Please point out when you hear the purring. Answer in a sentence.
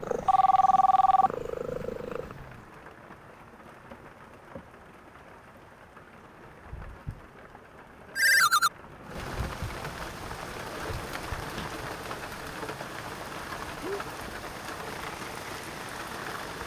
The purring can be heard from 0.0 to 2.7 s.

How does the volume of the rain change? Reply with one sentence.
The loudness of the rain goes up.